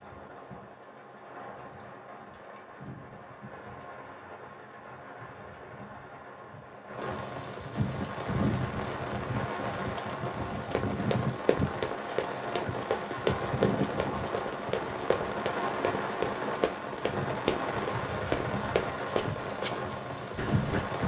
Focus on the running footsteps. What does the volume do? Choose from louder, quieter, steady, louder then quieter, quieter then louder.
steady.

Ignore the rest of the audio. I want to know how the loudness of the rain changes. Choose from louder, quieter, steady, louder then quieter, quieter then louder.
louder.